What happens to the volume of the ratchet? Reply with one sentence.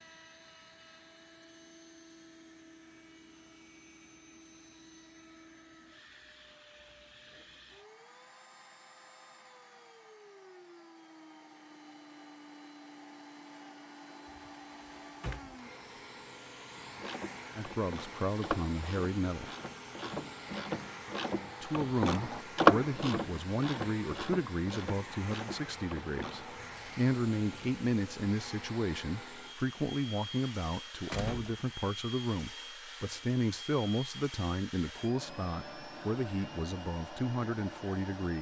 The volume of the ratchet goes up, then down.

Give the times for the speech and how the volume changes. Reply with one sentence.
You can hear the speech briefly from 17.6 to 19.5 s; and from 21.6 to 38.3 s, at a steady volume.